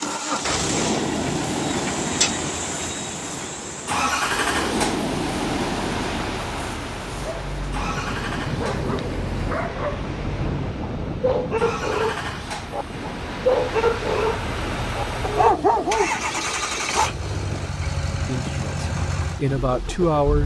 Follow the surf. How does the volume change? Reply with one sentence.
The loudness of the surf goes down.